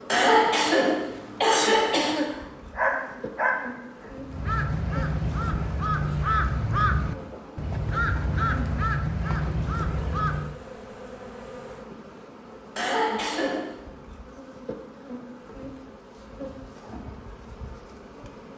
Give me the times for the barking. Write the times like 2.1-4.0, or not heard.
2.2-4.1.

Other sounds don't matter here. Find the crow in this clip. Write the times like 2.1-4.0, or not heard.
4.2-10.6.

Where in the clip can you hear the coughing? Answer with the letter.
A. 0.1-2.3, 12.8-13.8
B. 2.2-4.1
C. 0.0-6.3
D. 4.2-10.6
A.